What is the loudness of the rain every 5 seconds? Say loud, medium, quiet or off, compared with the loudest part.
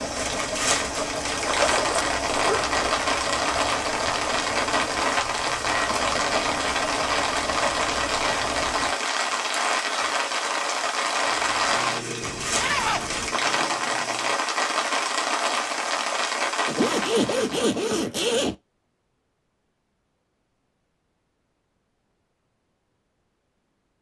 loud, loud, loud, loud, off.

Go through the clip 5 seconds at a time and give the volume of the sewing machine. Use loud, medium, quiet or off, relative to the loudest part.
loud, loud, medium, off, off.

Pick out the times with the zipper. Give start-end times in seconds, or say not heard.
1.4-2.9, 12.2-13.3, 16.6-18.6.